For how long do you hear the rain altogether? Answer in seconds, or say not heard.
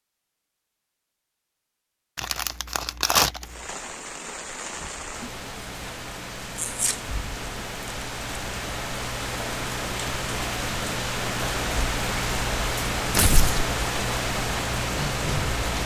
12 s.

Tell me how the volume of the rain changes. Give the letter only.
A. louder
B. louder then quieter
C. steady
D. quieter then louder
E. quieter
A.